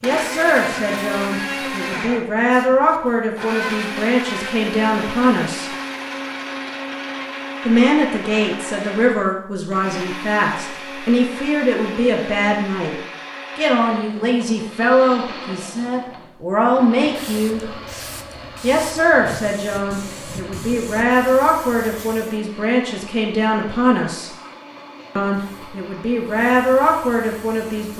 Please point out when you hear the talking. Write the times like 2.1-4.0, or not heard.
0.0-5.7, 7.7-12.9, 13.6-17.6, 18.6-24.3, 25.1-27.9.